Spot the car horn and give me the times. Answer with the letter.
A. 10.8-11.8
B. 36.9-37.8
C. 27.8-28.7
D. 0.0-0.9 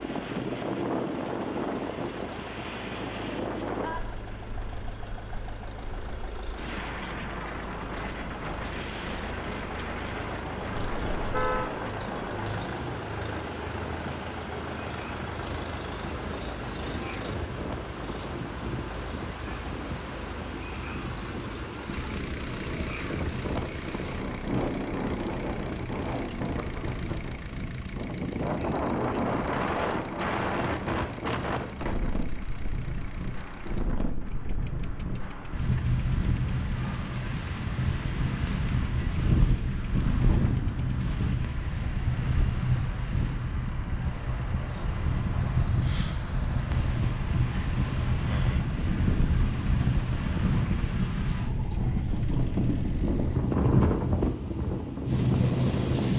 A.